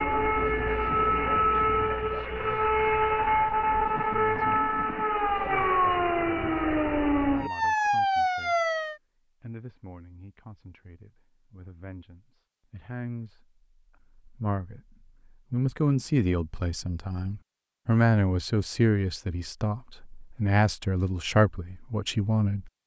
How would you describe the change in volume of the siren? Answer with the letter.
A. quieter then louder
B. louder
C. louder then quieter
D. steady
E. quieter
D.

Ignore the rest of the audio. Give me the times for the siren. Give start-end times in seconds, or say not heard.
0.0-8.9.